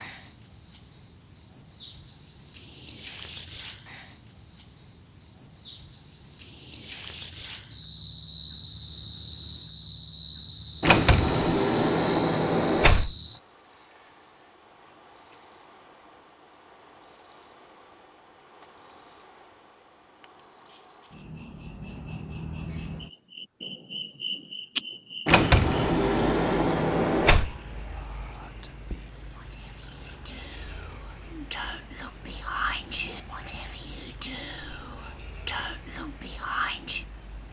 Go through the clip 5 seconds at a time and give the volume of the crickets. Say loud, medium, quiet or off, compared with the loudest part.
loud, loud, loud, loud, loud, loud, loud, medium.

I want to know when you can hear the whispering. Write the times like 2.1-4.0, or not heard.
27.9-37.0.